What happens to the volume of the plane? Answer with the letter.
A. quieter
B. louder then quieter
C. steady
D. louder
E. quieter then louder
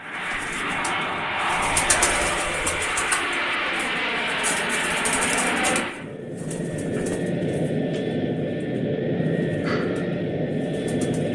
C.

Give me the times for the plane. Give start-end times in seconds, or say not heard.
0.0-11.3.